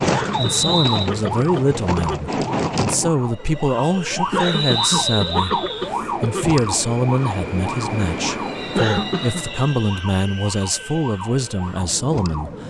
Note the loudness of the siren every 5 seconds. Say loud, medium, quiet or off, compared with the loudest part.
loud, loud, medium.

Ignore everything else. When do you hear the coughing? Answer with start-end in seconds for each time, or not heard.
0.1-2.2, 4.3-6.5, 8.8-9.4.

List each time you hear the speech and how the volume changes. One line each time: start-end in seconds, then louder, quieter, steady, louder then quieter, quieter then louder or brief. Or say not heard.
0.3-12.6 steady.